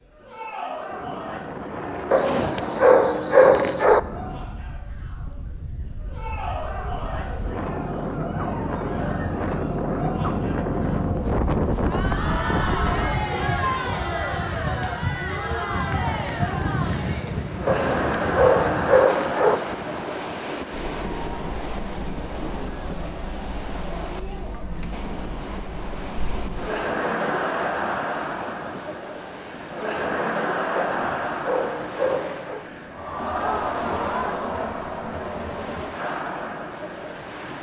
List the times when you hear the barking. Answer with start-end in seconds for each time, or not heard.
2.1-4.0, 17.6-19.6, 30.8-32.6.